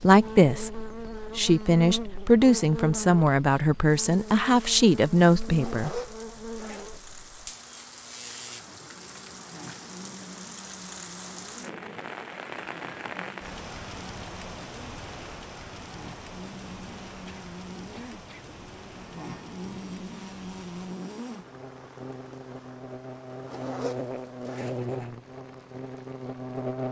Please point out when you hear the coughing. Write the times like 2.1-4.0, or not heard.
17.2-18.4.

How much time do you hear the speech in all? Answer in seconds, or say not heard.
6 s.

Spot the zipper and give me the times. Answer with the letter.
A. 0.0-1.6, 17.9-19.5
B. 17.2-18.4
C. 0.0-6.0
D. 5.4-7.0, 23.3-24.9
D.